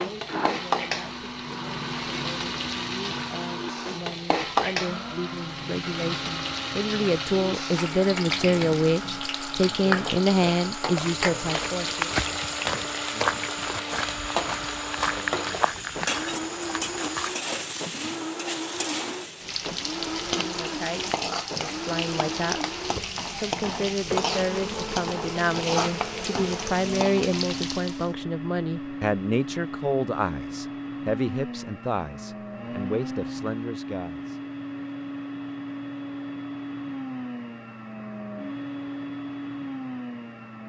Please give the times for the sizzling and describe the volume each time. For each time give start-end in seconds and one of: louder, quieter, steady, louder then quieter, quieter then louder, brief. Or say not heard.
0.0-28.1 steady.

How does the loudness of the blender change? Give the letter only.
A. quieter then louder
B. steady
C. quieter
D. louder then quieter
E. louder
B.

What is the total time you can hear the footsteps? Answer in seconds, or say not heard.
7 s.